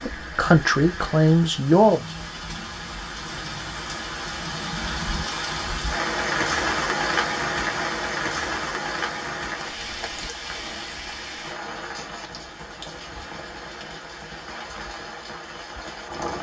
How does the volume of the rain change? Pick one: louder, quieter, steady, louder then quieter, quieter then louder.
louder then quieter.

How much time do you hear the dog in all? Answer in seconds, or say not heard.
not heard.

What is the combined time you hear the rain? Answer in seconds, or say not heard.
16 s.